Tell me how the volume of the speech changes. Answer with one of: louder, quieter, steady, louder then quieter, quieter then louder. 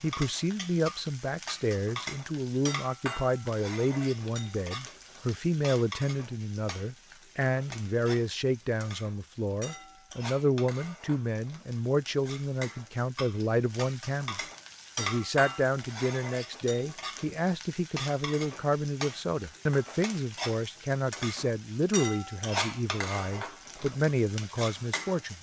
steady.